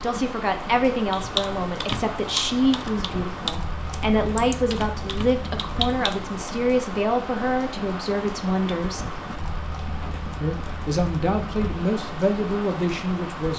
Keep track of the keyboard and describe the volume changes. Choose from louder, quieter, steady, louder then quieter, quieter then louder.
quieter then louder.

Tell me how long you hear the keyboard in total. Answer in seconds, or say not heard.
5 s.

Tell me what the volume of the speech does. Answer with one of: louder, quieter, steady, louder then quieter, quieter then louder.
steady.